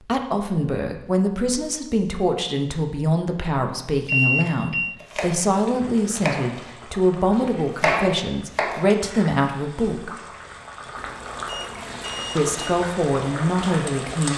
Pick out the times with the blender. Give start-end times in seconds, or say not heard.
not heard.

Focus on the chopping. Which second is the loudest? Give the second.
8 s.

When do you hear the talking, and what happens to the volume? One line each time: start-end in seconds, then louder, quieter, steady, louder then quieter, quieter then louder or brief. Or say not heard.
0.0-10.2 steady
12.3-14.3 brief.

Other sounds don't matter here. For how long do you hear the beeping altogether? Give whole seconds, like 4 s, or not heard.
3 s.